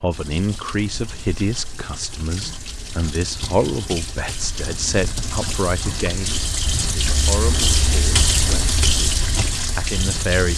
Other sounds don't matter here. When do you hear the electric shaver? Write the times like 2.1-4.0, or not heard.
not heard.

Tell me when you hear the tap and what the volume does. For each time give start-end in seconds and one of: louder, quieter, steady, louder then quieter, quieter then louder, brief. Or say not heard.
0.0-10.5 louder.